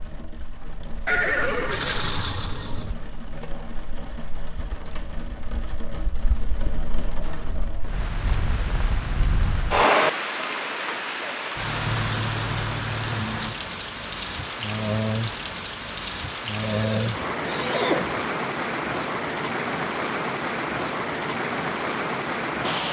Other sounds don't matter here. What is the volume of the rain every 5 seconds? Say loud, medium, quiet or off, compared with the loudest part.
quiet, loud, loud, loud, loud.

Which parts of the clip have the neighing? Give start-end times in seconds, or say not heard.
1.1-2.9, 16.6-18.3.